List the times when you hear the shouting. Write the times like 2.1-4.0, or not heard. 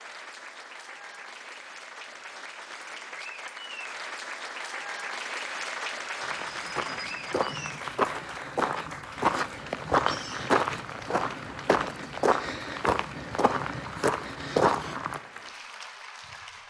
not heard.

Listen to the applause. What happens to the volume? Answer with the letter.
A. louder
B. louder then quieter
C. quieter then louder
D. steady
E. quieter
B.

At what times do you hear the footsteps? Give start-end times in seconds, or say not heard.
6.2-15.2.